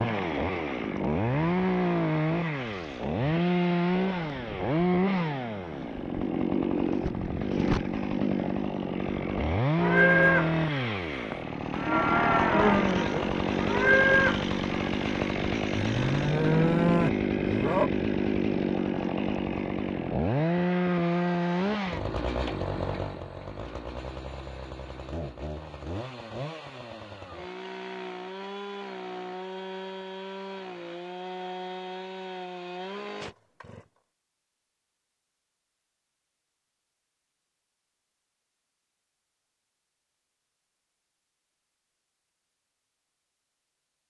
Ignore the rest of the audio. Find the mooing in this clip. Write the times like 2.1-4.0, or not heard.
9.8-17.9.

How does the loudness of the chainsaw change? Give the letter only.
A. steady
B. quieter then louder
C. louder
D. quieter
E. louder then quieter
D.